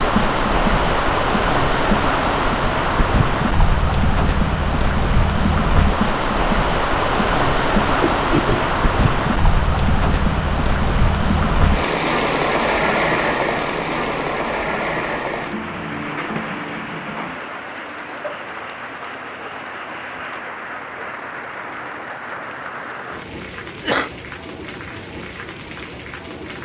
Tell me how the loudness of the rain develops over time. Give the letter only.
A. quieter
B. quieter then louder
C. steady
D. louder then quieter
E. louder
A.